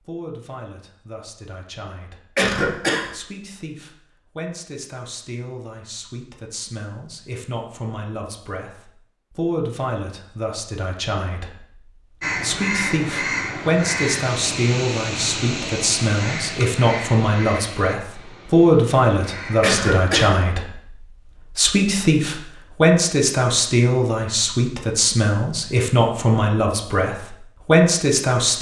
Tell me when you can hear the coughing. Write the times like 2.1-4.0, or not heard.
2.4-3.1, 19.6-20.4.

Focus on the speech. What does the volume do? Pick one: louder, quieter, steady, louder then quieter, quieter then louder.
louder.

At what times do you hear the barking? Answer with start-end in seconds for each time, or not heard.
not heard.